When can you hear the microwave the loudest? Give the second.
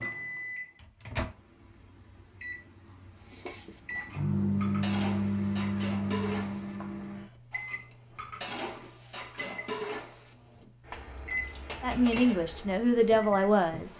5 s.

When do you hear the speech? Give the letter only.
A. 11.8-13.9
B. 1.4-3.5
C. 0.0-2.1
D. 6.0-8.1
A.